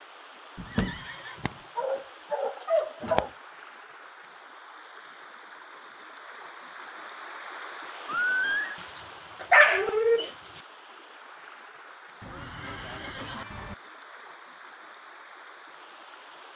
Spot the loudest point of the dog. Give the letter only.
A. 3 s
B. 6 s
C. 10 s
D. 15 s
C.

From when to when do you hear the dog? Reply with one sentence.
The dog can be heard from 0.6 to 3.3 s and from 8.8 to 10.6 s.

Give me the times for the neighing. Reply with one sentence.
The neighing can be heard from 0.7 to 1.6 s, from 8.1 to 8.8 s and from 12.2 to 13.8 s.